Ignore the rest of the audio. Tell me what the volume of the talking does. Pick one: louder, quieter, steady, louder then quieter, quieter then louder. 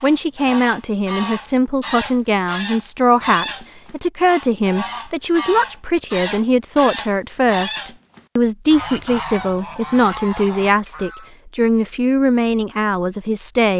steady.